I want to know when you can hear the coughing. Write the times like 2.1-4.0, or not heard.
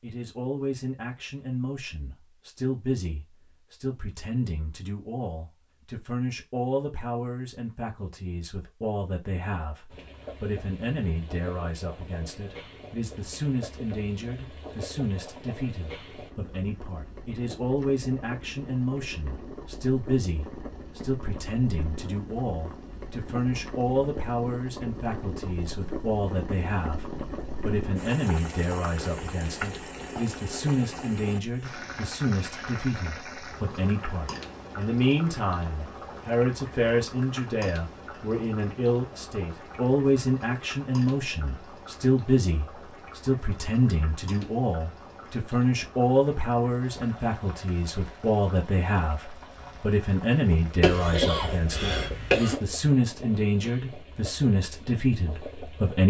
50.8-52.5.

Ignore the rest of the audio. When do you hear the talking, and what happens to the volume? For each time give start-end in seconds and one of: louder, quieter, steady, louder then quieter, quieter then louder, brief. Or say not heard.
0.0-56.0 louder.